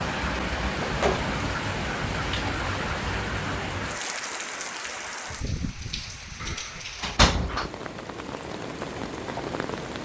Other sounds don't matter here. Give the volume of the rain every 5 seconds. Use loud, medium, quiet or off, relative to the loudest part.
loud, medium.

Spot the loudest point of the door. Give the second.
7 s.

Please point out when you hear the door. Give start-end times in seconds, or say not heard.
0.8-1.4, 6.4-7.7.